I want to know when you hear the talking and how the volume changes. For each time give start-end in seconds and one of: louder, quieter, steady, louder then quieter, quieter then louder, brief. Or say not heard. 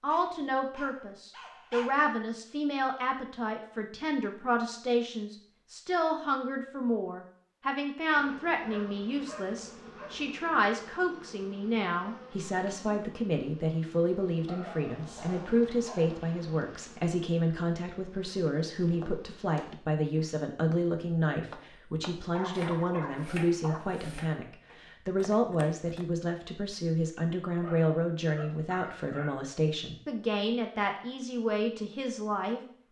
0.0-32.6 steady.